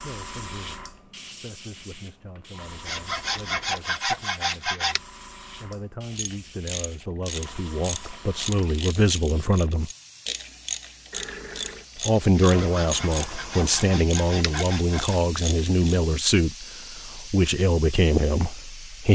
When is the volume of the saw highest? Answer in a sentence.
The volume of the saw peaks at 4 seconds.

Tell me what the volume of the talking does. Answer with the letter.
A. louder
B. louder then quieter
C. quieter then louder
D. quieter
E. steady
A.